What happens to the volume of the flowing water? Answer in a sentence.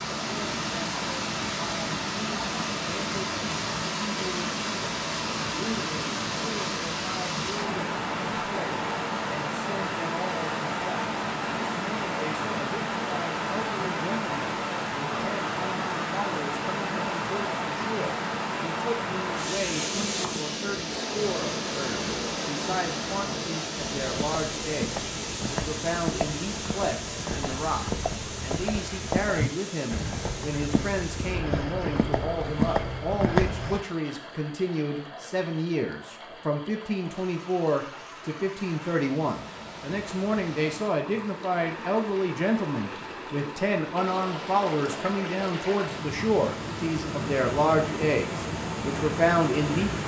The volume of the flowing water goes down, then up.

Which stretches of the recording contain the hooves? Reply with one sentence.
You can hear the hooves from 24.0 to 33.9 s.